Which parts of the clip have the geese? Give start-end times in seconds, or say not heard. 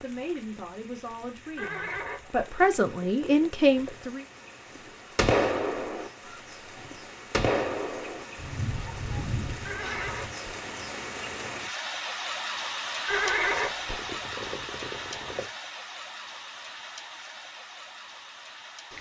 4.8-10.3.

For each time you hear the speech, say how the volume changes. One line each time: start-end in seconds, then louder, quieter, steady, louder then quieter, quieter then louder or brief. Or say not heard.
0.0-4.2 louder.